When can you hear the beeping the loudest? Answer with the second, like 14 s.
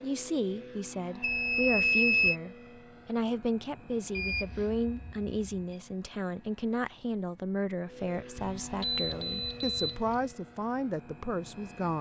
2 s.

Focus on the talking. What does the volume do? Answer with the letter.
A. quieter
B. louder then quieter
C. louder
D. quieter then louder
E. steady
E.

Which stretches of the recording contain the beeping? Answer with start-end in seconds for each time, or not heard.
1.2-2.4, 4.2-5.8, 8.3-10.3.